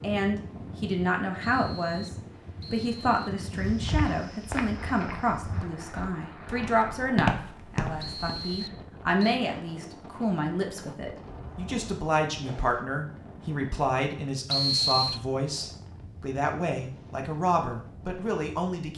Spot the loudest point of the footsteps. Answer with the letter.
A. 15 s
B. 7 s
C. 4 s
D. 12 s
B.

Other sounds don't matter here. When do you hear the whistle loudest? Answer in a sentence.
The volume of the whistle peaks at 15 seconds.